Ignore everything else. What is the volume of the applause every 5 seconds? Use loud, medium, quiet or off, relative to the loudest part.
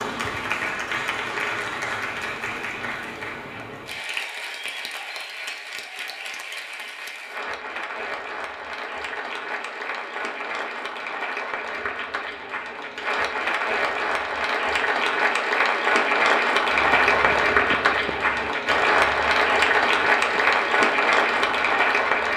medium, quiet, medium, loud, loud.